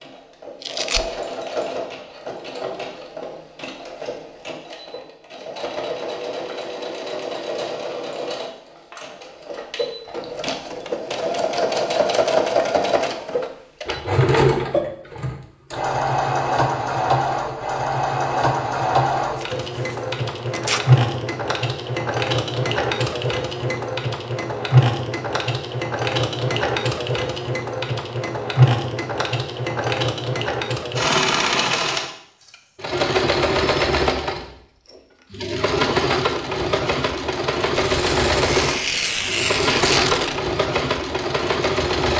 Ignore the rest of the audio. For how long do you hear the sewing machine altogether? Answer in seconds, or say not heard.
42 s.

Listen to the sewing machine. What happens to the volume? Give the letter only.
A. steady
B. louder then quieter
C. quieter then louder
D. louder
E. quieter
D.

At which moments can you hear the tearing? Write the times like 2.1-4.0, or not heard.
0.6-1.1, 19.4-20.8, 37.7-40.4.